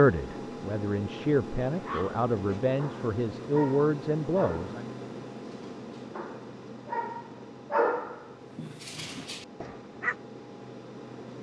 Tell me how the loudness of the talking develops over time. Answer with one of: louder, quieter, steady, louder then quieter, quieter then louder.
louder.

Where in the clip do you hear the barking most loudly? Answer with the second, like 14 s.
8 s.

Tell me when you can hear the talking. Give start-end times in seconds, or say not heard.
0.0-4.8.